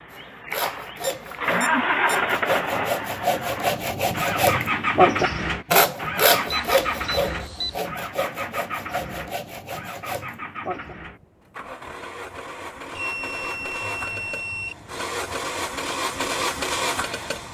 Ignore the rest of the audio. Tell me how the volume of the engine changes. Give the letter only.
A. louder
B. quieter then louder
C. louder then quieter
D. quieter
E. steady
B.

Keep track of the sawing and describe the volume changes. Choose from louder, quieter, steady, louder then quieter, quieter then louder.
louder then quieter.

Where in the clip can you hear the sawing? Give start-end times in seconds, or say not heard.
0.1-10.9.